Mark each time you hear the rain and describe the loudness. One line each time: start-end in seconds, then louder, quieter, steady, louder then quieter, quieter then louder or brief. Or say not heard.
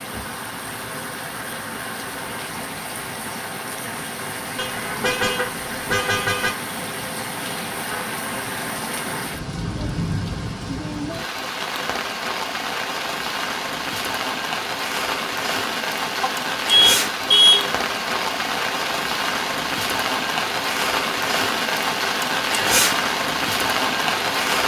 0.0-24.6 louder.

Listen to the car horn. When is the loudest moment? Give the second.
17 s.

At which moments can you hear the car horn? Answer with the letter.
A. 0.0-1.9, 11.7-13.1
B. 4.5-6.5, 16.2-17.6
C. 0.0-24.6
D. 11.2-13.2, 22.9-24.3
B.